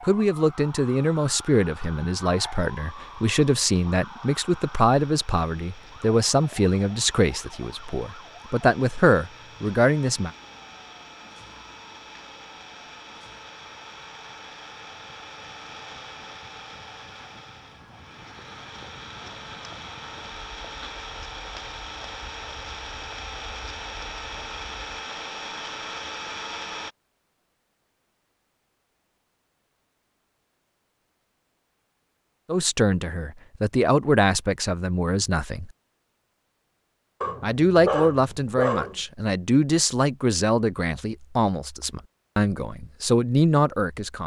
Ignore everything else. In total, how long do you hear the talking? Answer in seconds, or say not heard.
20 s.